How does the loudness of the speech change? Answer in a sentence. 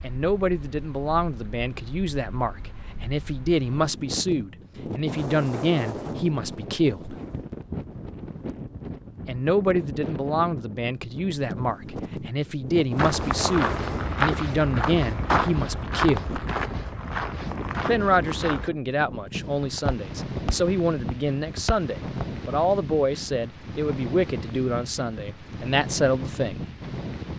The loudness of the speech stays about the same.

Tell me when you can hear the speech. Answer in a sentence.
The speech can be heard from 0.0 to 7.2 s, from 9.2 to 16.4 s and from 17.9 to 26.6 s.